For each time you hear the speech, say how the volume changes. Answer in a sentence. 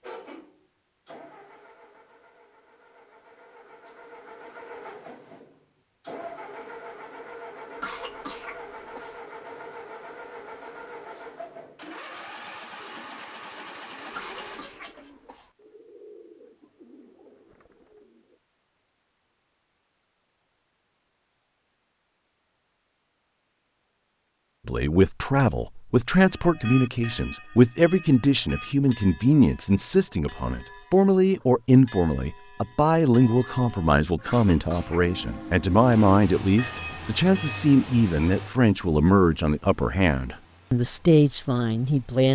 The speech can be heard from 24.6 to 42.3 s, at a steady volume.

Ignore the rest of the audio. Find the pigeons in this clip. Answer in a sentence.
You can hear the pigeons from 12.8 to 18.4 s.